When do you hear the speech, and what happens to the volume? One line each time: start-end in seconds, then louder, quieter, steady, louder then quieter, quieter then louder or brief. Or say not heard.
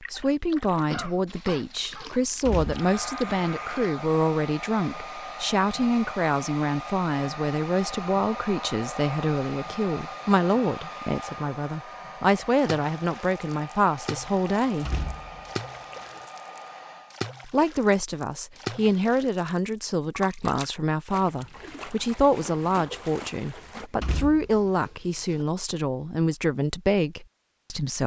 0.0-14.9 steady
17.4-28.0 steady.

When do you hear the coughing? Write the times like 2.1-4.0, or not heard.
0.9-2.1.